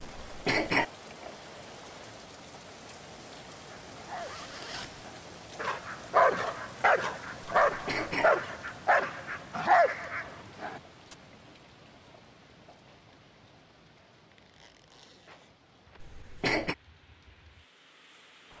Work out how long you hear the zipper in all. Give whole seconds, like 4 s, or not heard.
2 s.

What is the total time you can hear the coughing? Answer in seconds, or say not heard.
2 s.